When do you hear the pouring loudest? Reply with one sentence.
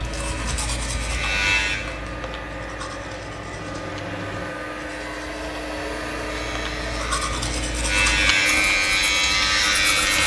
The loudest moment of the pouring is at 4 seconds.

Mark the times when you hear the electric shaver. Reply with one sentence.
You can hear the electric shaver from 0.0 to 1.8 s and from 6.2 to 10.2 s.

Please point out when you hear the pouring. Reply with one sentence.
You can hear the pouring from 1.9 to 4.6 s.